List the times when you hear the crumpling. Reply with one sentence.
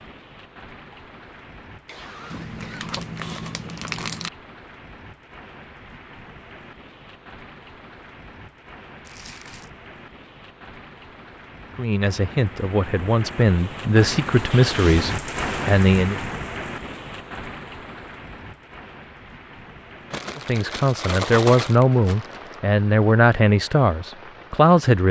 The crumpling can be heard from 2.3 to 4.3 s, from 9.0 to 9.7 s and from 20.1 to 22.6 s.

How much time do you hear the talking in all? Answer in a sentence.
You can hear the talking for 9 seconds altogether.